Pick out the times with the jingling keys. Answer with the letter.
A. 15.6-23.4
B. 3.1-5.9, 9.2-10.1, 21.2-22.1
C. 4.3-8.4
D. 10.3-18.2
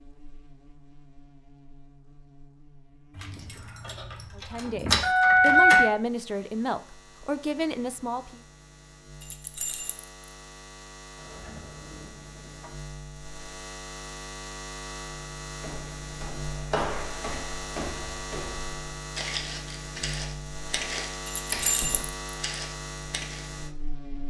B.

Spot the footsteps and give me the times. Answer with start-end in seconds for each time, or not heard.
15.6-23.4.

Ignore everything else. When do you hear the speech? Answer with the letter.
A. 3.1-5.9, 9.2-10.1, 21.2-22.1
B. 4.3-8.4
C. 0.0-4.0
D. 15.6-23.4
B.